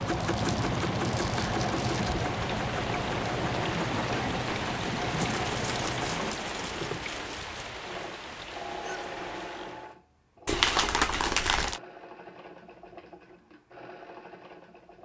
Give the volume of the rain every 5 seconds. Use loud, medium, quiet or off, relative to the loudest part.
loud, loud, off.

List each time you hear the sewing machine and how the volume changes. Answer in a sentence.
The sewing machine can be heard from 0.0 to 15.0 s, getting quieter.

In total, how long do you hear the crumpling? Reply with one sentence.
The crumpling can be heard for 6 seconds in total.